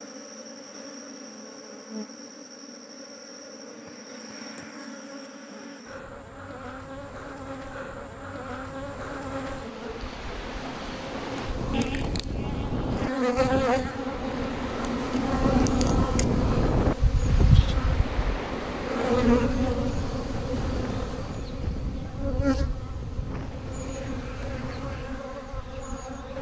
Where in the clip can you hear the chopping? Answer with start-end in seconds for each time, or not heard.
not heard.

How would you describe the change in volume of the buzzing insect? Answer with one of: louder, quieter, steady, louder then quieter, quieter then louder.
louder then quieter.